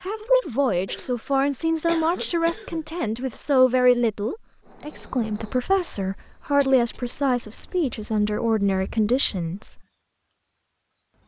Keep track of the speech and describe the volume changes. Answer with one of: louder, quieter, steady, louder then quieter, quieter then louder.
steady.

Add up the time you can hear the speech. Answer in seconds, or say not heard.
10 s.